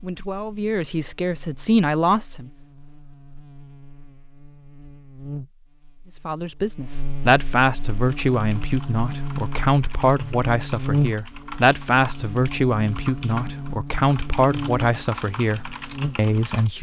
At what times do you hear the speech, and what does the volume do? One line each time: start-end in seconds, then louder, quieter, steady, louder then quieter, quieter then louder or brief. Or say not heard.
0.0-2.5 brief
6.2-16.7 steady.